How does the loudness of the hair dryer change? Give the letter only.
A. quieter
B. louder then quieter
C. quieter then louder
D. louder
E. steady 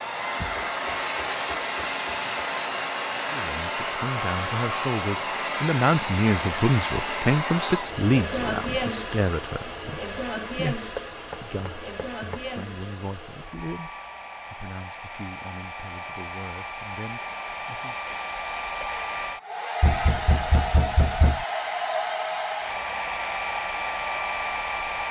C.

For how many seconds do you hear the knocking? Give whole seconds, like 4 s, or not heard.
5 s.